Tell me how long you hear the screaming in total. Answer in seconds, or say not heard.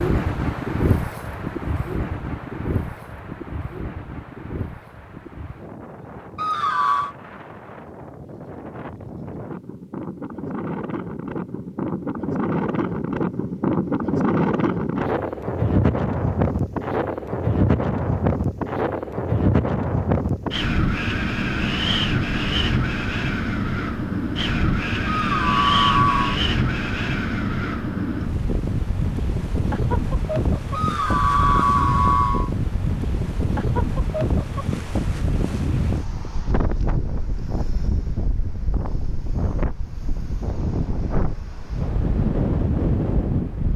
4 s.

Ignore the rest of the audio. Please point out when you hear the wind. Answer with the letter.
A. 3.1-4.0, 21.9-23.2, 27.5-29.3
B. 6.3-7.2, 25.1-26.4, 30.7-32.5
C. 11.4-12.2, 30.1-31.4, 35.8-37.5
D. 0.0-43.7
D.